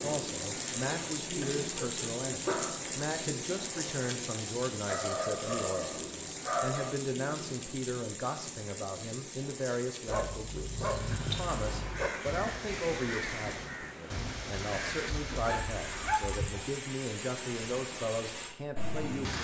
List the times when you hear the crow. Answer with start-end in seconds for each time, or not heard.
10.7-16.1.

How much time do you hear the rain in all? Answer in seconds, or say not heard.
19 s.